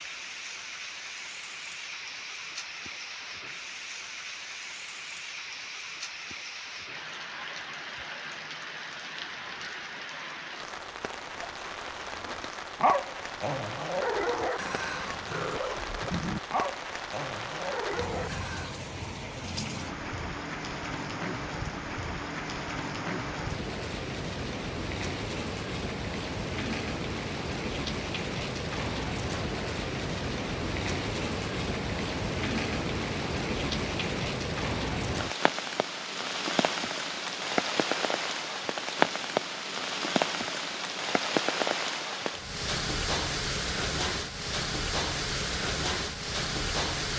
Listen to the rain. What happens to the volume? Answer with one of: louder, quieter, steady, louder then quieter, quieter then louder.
louder.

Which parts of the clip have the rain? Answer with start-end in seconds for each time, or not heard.
0.0-47.1.